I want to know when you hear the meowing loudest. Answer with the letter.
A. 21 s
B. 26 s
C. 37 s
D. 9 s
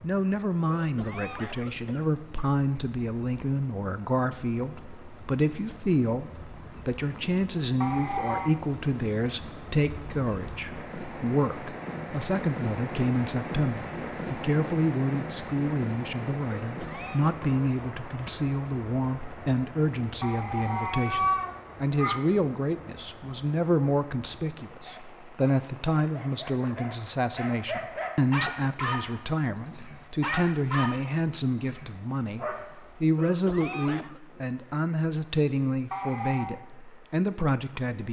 A.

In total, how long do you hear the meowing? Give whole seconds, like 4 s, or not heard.
3 s.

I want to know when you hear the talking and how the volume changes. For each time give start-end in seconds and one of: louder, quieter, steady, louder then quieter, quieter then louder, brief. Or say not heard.
0.0-38.0 steady.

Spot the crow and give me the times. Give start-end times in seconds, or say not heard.
not heard.